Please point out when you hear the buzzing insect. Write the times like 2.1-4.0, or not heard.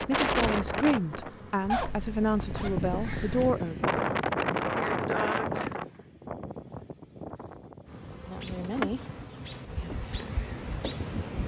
0.0-1.9, 7.8-11.4.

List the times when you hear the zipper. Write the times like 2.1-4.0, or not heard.
1.7-3.5.